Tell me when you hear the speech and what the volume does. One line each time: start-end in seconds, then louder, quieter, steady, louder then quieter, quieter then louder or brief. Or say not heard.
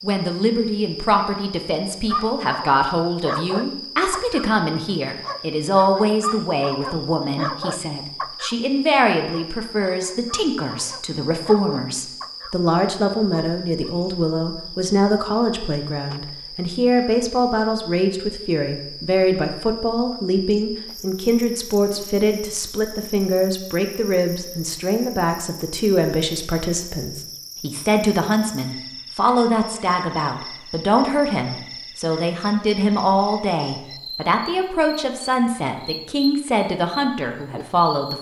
0.0-38.1 steady.